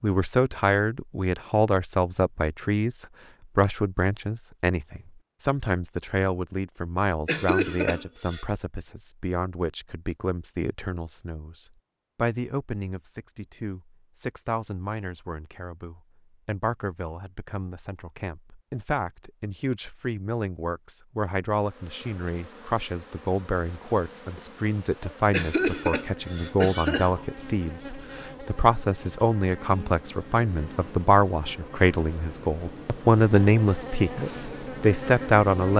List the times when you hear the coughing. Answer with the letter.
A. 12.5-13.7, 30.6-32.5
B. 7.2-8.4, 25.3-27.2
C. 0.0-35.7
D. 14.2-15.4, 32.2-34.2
B.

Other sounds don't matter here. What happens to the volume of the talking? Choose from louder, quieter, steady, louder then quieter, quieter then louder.
quieter then louder.